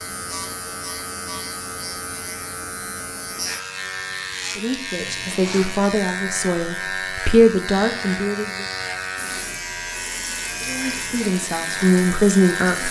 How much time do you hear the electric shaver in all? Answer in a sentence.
You can hear the electric shaver for 13 seconds altogether.